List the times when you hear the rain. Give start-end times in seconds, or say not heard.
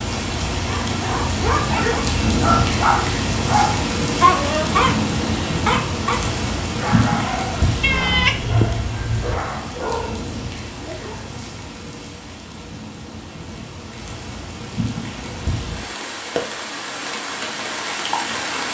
0.0-18.6.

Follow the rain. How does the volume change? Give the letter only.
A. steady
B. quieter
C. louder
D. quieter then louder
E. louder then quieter
D.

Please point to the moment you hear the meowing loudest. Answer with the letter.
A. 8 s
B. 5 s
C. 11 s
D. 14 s
A.